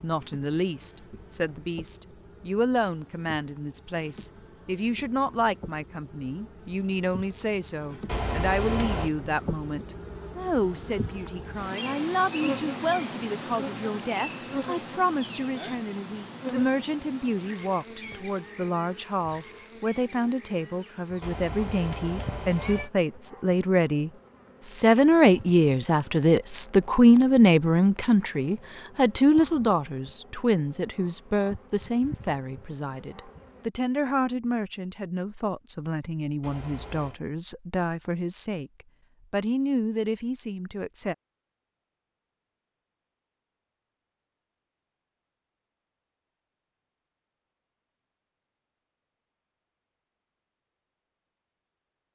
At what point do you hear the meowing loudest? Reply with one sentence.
The volume of the meowing peaks at 9 seconds.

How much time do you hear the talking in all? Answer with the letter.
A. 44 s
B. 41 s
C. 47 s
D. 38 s
B.